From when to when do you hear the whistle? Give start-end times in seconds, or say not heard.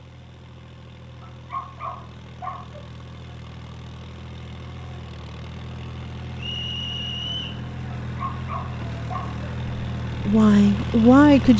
6.3-7.6.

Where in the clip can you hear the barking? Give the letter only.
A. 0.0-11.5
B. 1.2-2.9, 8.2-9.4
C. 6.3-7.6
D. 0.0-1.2
B.